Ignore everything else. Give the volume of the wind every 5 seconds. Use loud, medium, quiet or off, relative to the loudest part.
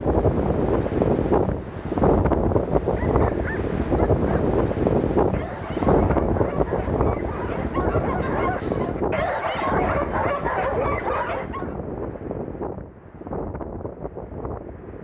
loud, loud, medium.